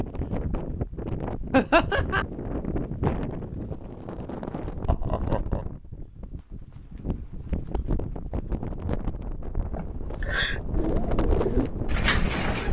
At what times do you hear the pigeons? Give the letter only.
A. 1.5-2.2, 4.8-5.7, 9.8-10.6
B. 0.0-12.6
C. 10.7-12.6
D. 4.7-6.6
C.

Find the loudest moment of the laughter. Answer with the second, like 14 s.
2 s.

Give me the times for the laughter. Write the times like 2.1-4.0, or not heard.
1.5-2.2, 4.8-5.7, 9.8-10.6.